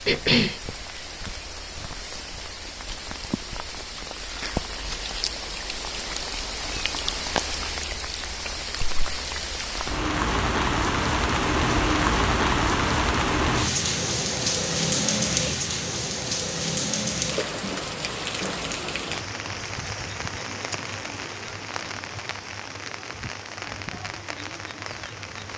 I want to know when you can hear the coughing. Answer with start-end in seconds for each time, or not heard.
0.1-0.6.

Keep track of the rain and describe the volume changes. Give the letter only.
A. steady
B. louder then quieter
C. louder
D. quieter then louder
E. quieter
B.